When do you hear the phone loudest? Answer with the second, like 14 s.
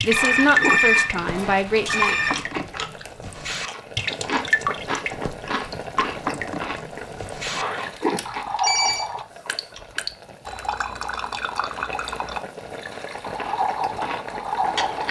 1 s.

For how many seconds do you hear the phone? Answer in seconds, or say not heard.
3 s.